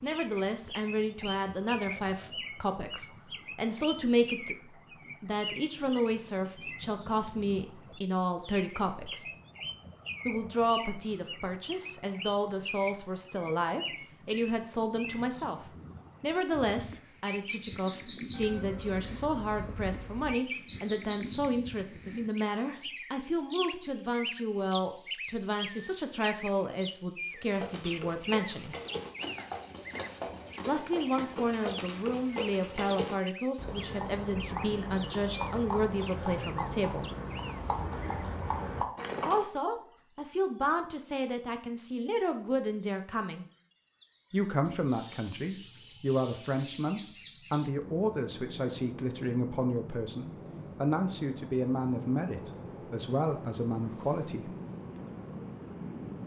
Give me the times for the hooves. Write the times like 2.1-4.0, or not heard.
27.3-39.5.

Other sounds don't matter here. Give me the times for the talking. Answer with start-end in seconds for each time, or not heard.
0.0-9.2, 10.2-28.8, 30.6-37.1, 39.2-43.5, 44.3-54.5.